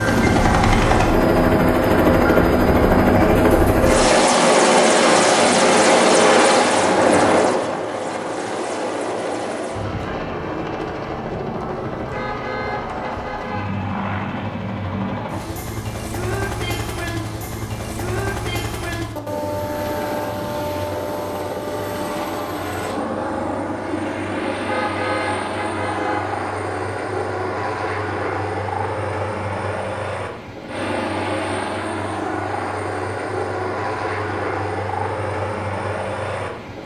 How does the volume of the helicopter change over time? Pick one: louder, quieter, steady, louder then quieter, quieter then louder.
quieter.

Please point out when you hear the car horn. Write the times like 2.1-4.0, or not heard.
12.1-13.8, 24.6-26.3.